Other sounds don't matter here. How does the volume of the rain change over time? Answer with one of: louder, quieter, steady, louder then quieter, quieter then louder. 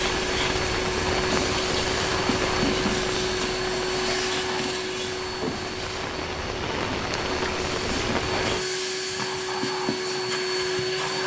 quieter then louder.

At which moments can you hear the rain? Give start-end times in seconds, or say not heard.
0.0-8.7.